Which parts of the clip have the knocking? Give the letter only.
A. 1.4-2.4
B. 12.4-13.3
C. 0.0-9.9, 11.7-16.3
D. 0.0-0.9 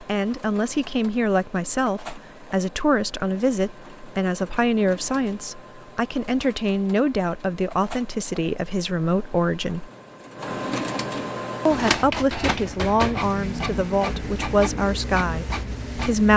B.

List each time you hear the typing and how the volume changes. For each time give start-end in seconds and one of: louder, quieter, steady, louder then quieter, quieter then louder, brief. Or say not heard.
not heard.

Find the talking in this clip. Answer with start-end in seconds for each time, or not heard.
0.0-9.9, 11.7-16.3.